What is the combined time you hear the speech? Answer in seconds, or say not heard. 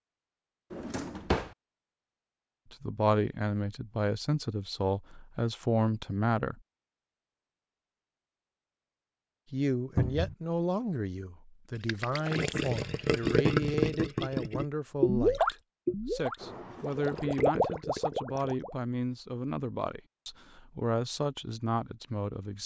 17 s.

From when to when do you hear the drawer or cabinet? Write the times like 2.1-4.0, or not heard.
0.7-1.6, 9.9-10.3, 16.4-17.4.